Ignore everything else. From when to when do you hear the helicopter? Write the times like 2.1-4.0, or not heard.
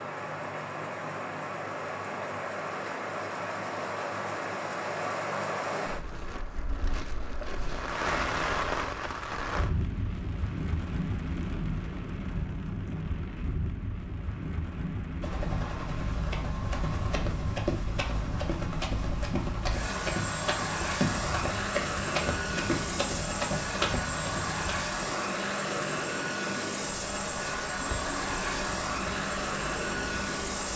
15.2-30.7.